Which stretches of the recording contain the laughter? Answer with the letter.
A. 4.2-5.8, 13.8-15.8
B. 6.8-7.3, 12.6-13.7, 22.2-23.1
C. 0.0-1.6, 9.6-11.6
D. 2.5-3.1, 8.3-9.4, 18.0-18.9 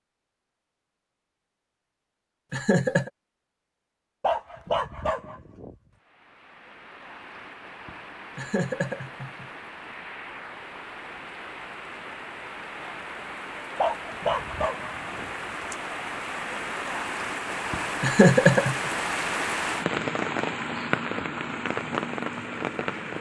D.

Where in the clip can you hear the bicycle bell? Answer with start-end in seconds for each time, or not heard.
not heard.